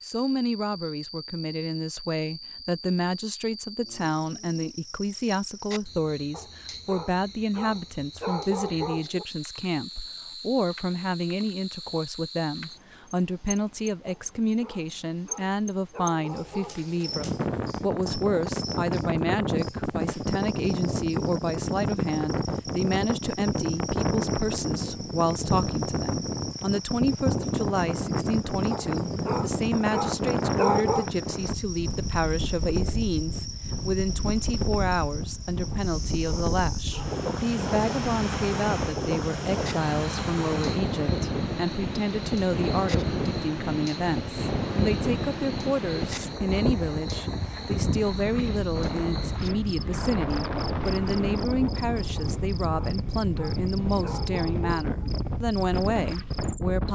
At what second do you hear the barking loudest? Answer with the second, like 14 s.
31 s.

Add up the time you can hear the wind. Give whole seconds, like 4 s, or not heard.
40 s.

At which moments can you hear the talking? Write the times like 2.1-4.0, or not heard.
0.0-56.8.